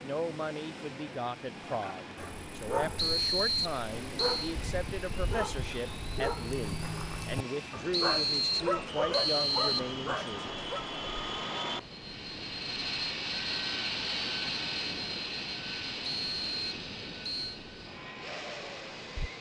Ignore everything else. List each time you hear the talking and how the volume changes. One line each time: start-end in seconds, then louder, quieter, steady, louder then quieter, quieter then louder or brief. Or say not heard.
0.0-10.5 steady.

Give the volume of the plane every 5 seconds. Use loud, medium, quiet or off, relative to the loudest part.
quiet, medium, loud, medium.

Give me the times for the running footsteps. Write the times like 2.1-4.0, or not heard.
not heard.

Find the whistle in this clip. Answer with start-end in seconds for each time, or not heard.
3.0-4.5, 7.9-9.9, 16.0-17.6.